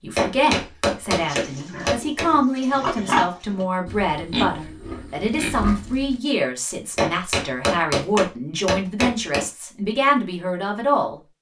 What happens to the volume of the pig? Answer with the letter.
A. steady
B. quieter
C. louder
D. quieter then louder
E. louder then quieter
E.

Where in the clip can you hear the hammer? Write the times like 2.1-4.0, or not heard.
0.1-2.2, 7.0-9.4.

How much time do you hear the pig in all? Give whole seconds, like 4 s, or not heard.
5 s.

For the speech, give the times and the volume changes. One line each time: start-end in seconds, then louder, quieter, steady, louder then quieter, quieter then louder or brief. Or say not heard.
0.0-11.2 steady.